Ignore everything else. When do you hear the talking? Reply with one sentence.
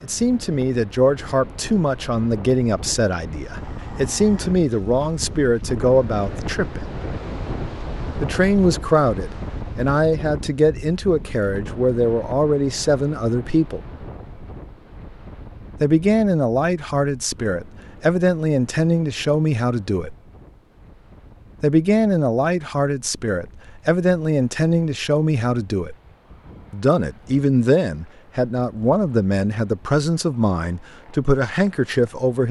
The talking can be heard from 0.0 to 6.8 s, from 8.2 to 13.8 s, from 15.8 to 20.1 s, from 21.6 to 25.9 s and from 26.7 to 32.4 s.